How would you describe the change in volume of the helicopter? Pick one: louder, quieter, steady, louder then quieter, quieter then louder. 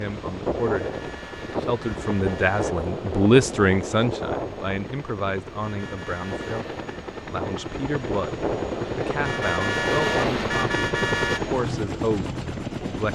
louder.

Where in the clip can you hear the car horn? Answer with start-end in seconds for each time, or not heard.
0.7-2.8, 5.5-7.0, 9.2-11.4.